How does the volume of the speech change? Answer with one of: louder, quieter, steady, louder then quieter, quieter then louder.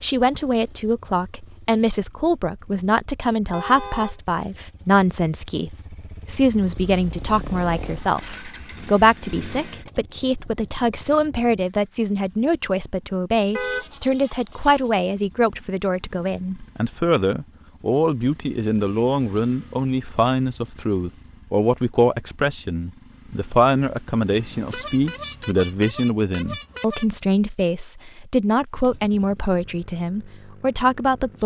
steady.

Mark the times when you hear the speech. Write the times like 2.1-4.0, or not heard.
0.0-31.4.